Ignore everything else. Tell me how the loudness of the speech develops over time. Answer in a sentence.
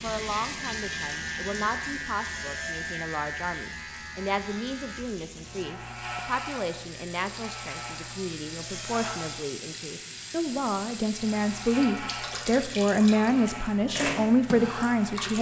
The loudness of the speech goes up.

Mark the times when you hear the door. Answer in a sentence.
You can hear the door from 2.2 to 3.0 s and from 8.6 to 9.3 s.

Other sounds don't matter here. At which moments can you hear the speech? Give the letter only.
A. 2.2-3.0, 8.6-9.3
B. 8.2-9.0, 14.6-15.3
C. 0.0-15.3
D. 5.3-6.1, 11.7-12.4
C.